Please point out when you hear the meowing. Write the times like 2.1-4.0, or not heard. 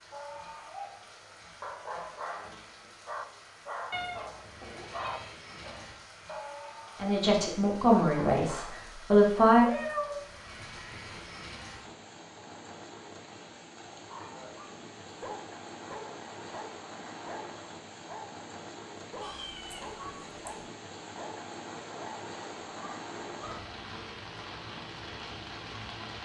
3.9-5.3, 9.6-11.3, 19.2-20.4.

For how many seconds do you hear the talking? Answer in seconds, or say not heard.
3 s.